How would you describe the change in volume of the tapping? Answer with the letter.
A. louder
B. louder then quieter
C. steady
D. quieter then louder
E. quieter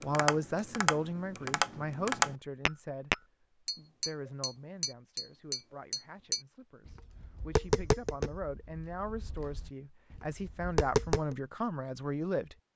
E.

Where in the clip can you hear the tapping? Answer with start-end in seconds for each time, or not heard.
0.0-11.3.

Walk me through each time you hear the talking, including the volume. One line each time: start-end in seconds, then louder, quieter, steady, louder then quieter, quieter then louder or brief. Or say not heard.
0.0-12.7 quieter then louder.